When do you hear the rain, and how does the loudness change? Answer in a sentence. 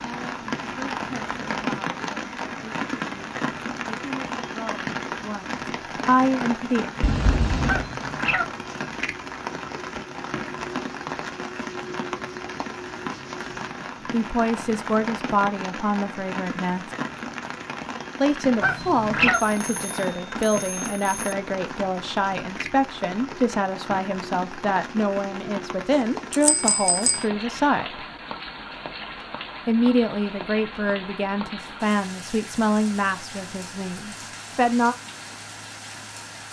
You can hear the rain from 0.0 to 36.4 s, getting quieter.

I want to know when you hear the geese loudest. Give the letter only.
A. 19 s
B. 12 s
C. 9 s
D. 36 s
A.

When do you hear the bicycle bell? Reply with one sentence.
The bicycle bell can be heard from 7.0 to 7.8 s, from 19.5 to 21.4 s and from 25.9 to 27.2 s.